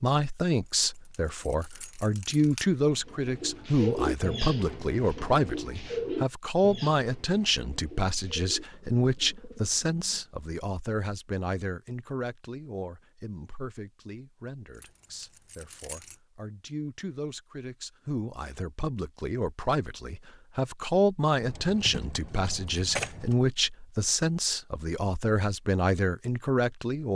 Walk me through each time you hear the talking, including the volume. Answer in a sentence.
The talking can be heard from 0.0 to 27.1 s, getting quieter then louder.